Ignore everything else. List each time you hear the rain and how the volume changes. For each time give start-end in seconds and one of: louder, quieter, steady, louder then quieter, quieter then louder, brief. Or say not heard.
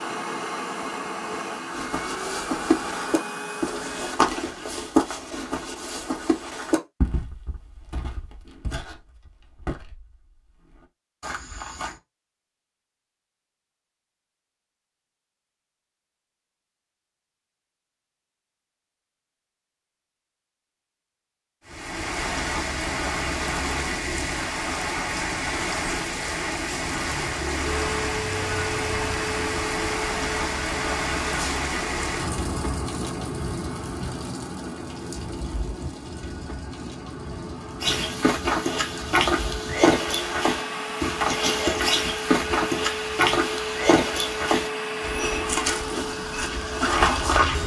21.6-47.6 quieter.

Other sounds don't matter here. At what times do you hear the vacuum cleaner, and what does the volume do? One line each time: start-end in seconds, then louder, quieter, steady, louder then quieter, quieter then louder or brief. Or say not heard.
0.0-4.2 steady
27.9-47.6 quieter then louder.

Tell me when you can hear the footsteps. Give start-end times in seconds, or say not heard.
1.7-12.0, 37.8-47.6.